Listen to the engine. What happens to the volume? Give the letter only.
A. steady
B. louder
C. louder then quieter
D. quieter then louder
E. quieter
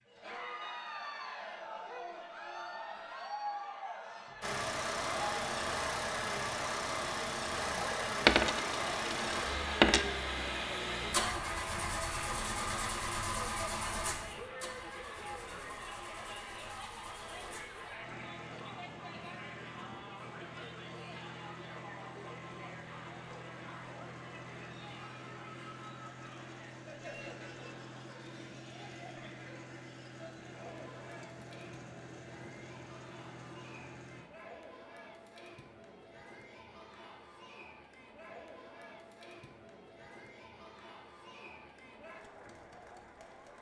E.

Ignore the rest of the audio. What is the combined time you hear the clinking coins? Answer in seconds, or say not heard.
2 s.